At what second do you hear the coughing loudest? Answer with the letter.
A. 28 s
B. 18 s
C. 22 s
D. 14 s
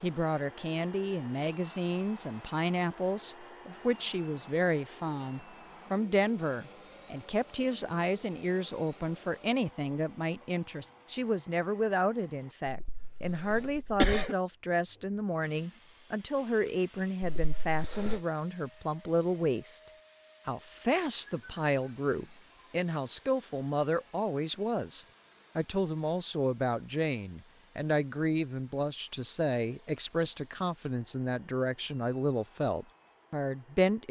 D.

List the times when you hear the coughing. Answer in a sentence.
The coughing can be heard from 12.7 to 14.3 s and from 17.4 to 18.2 s.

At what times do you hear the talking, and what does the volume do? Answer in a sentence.
The talking can be heard from 0.0 to 34.0 s, at a steady volume.